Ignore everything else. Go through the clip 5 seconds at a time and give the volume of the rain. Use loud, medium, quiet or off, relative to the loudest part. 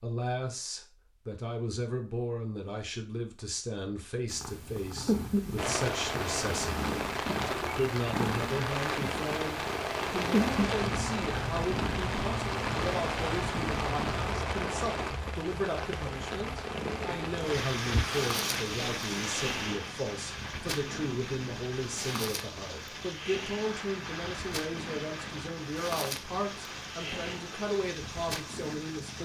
off, loud, loud, loud, medium, medium.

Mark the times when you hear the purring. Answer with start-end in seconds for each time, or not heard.
4.3-29.2.